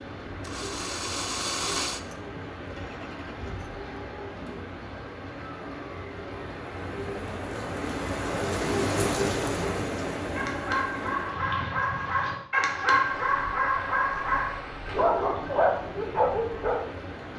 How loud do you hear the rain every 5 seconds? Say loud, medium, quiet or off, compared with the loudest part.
medium, loud, medium, medium.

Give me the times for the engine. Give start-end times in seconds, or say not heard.
0.2-3.9.